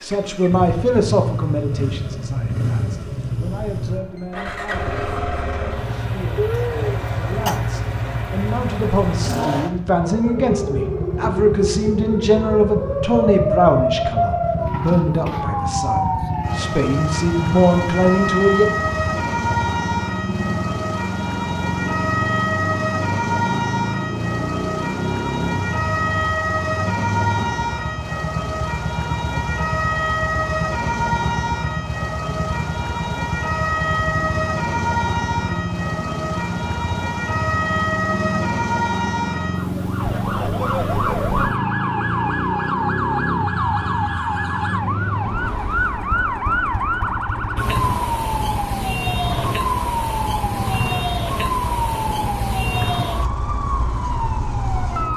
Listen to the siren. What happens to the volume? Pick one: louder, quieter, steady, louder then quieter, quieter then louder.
steady.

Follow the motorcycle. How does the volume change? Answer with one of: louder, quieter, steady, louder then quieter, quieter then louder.
steady.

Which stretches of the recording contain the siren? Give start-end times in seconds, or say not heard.
10.0-55.1.